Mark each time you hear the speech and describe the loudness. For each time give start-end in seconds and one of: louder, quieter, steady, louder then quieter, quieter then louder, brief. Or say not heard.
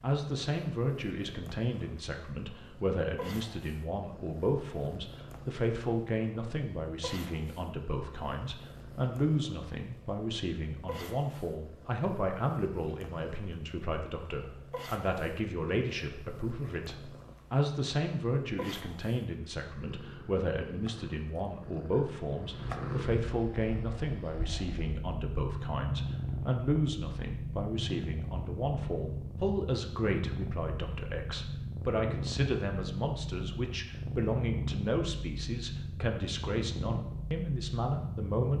0.0-38.5 steady.